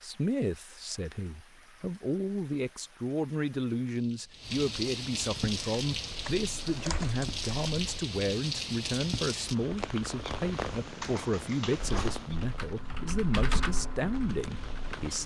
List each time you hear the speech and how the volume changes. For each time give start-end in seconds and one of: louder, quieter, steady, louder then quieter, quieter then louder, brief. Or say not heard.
0.0-15.2 steady.